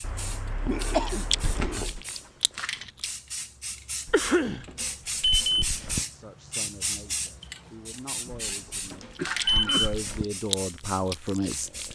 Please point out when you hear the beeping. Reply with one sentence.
You can hear the beeping from 1.4 to 2.0 s, from 4.0 to 6.0 s and from 8.3 to 10.2 s.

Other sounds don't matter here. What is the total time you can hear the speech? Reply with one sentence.
The speech can be heard for 6 seconds in total.